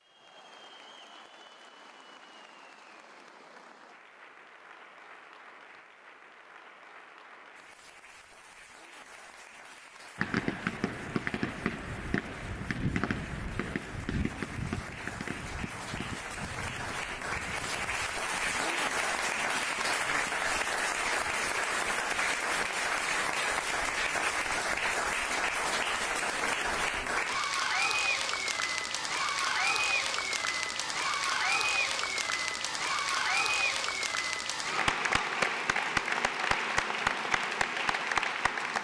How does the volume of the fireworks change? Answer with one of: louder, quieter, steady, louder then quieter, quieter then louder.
quieter.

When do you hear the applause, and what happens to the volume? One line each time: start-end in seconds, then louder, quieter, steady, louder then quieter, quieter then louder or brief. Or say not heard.
0.0-38.7 louder.